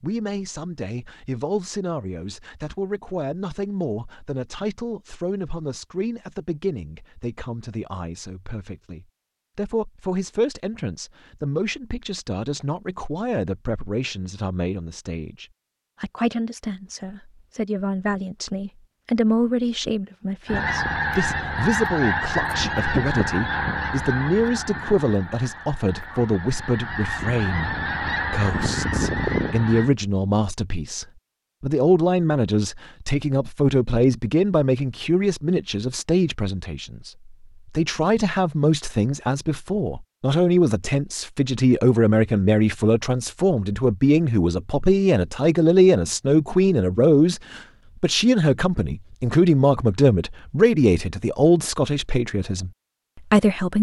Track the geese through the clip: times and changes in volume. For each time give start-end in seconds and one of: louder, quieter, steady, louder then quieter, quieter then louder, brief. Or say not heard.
20.4-29.9 quieter then louder.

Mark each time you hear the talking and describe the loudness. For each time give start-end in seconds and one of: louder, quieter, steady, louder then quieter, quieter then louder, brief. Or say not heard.
0.0-52.7 louder
53.3-53.7 brief.